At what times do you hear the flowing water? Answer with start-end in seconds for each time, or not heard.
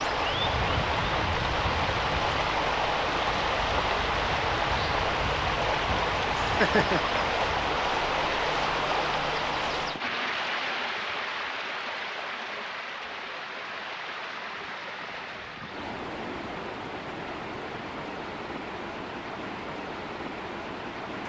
0.0-21.2.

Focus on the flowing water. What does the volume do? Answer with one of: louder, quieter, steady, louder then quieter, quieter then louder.
quieter.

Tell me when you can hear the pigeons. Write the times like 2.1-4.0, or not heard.
not heard.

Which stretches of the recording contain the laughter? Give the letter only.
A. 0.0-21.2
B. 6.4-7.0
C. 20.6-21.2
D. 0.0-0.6
B.